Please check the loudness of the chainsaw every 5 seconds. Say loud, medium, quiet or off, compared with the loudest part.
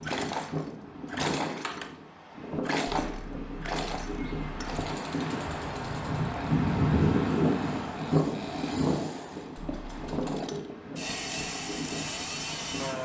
loud, medium, loud.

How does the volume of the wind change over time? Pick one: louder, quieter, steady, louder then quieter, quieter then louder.
louder then quieter.